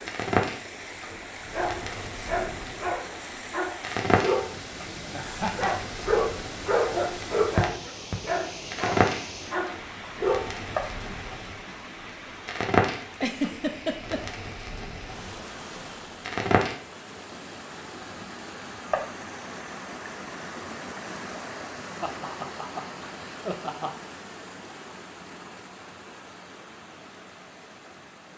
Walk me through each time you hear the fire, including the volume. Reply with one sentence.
You can hear the fire from 0.1 to 16.8 s, getting louder then quieter.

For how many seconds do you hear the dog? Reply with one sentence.
The dog can be heard for 9 seconds in total.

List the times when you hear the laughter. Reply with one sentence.
You can hear the laughter from 5.1 to 5.8 s, from 13.1 to 14.2 s and from 22.0 to 23.9 s.